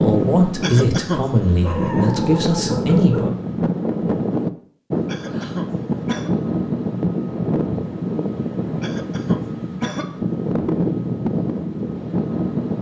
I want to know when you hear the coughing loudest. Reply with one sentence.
The volume of the coughing peaks at 1 second.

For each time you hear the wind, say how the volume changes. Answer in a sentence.
You can hear the wind from 0.0 to 12.7 s, at a steady volume.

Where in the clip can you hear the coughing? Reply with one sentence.
You can hear the coughing from 0.6 to 1.4 s, from 5.0 to 6.3 s and from 8.8 to 10.2 s.